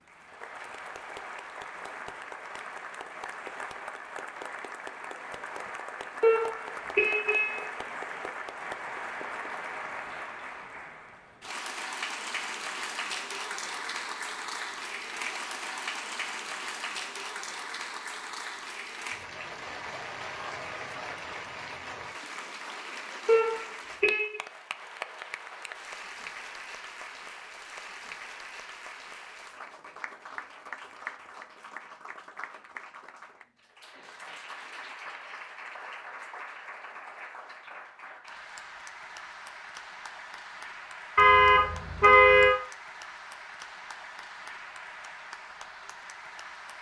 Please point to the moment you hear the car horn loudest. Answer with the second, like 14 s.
42 s.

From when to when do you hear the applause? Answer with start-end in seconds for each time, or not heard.
0.0-46.7.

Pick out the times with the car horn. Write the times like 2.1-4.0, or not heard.
6.2-7.7, 23.2-24.4, 41.1-42.5.